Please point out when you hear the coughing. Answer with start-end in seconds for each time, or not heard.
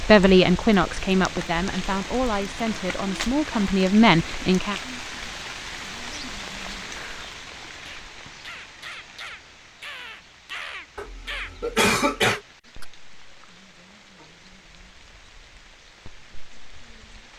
10.9-12.4.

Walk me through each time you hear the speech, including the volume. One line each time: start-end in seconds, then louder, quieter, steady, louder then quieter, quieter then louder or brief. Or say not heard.
0.0-4.8 quieter then louder.